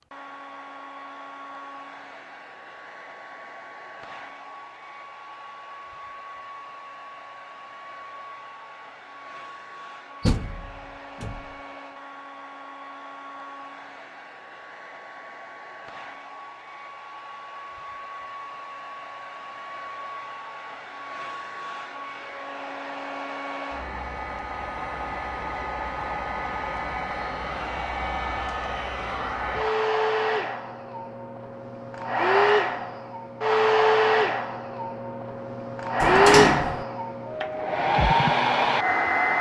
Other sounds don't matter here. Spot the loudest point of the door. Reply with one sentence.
The loudest moment of the door is at 36 seconds.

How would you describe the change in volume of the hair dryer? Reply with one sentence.
The loudness of the hair dryer goes up.